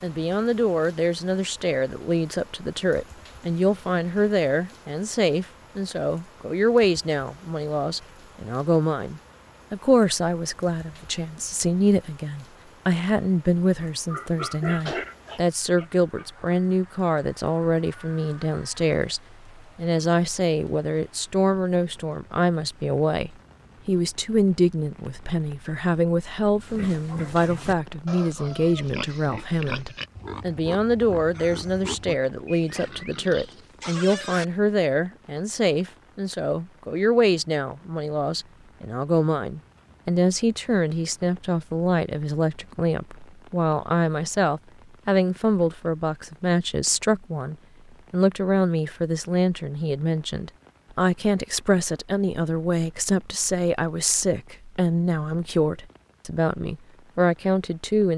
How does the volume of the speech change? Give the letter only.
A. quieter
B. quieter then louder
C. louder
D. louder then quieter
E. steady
E.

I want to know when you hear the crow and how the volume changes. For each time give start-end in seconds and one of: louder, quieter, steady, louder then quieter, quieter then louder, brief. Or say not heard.
not heard.